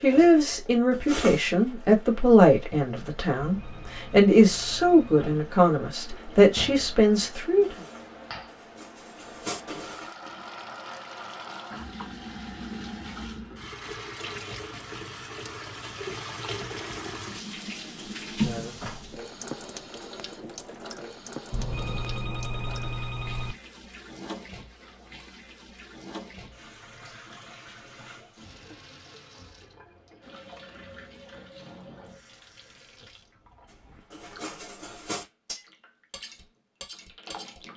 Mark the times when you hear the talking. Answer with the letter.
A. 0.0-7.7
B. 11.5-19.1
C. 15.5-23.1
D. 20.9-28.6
A.